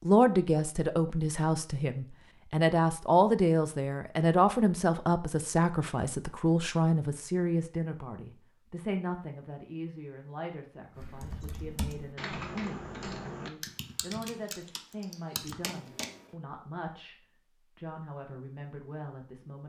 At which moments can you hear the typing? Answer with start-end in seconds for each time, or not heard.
10.9-16.3.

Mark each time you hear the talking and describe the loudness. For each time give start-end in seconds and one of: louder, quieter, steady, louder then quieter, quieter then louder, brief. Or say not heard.
0.0-17.1 quieter
17.8-19.6 brief.